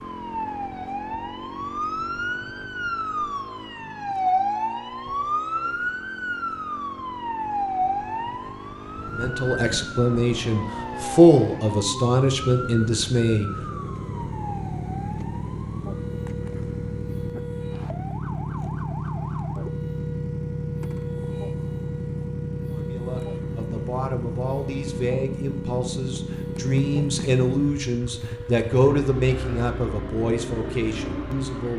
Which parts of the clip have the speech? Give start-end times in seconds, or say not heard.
9.2-13.5, 22.7-31.7.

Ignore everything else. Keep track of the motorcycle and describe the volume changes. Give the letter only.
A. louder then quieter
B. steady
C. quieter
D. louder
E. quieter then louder
D.